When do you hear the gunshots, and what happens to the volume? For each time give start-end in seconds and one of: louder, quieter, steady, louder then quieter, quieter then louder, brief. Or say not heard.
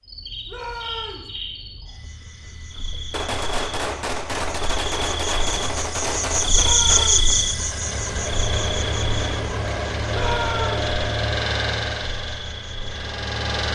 3.1-7.2 steady.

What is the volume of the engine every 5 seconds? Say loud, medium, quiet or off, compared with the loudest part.
off, loud, loud.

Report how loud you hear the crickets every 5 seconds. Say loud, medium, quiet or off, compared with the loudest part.
quiet, loud, quiet.